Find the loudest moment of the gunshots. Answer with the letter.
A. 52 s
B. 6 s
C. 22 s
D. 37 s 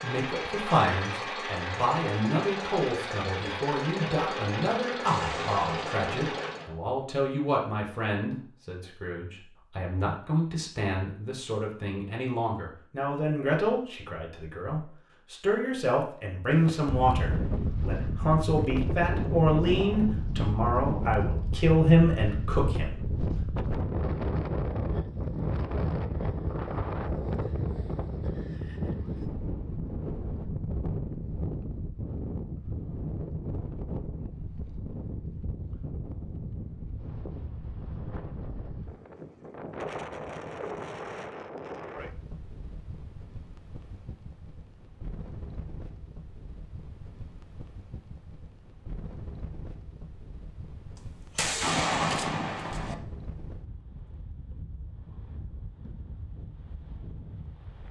A.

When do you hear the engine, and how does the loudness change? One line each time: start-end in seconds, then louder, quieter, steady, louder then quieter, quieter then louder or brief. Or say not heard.
0.0-6.7 steady.